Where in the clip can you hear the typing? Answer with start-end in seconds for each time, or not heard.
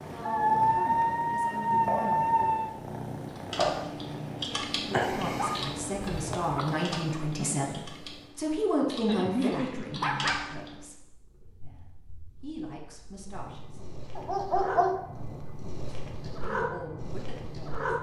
3.4-10.8.